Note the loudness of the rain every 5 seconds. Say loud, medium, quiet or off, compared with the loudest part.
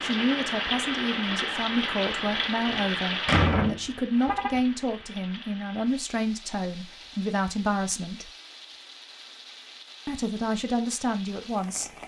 loud, quiet, quiet.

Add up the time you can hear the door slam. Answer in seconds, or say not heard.
2 s.